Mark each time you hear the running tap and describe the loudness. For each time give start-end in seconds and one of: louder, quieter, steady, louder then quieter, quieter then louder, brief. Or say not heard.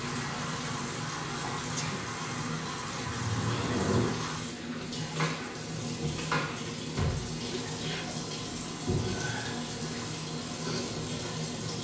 0.0-11.8 steady.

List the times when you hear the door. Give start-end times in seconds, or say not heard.
3.0-4.2, 6.7-7.4.